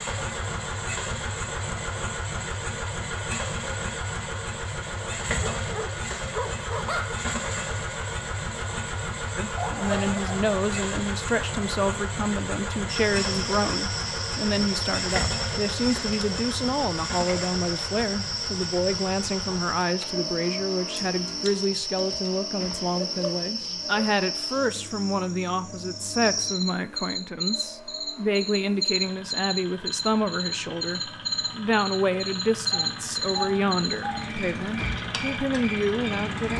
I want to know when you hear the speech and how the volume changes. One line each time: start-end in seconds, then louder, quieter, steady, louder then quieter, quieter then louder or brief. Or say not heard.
9.3-36.5 steady.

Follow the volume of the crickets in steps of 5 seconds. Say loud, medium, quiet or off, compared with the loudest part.
off, off, loud, loud, loud, loud, loud, medium.